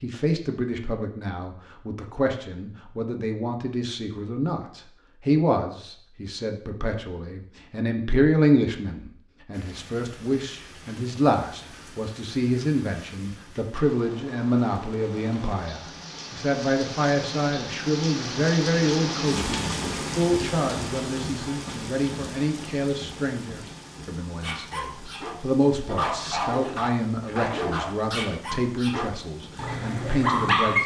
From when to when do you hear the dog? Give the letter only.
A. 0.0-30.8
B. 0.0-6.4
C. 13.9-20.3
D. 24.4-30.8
D.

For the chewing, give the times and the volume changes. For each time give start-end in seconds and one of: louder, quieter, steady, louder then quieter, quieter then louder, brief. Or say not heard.
not heard.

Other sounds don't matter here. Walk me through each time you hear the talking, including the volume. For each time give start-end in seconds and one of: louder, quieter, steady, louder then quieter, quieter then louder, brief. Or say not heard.
0.0-30.8 steady.